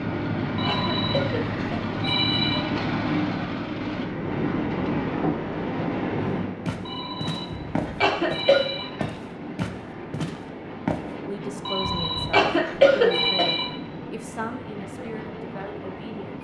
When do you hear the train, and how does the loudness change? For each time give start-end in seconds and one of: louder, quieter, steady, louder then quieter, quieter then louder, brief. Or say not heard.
0.0-16.3 quieter.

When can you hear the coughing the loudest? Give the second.
13 s.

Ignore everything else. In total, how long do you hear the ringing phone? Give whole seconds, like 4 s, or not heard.
6 s.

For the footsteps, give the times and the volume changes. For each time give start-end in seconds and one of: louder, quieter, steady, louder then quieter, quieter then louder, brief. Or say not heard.
6.7-11.1 steady.